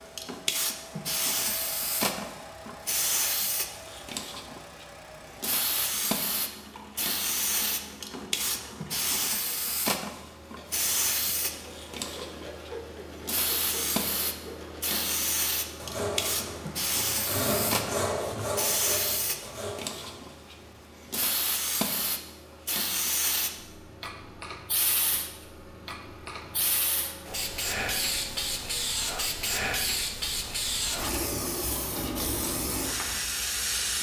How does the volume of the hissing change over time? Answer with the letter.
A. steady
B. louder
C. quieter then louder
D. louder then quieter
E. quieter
A.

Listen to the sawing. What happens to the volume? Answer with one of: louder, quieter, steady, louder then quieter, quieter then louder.
louder then quieter.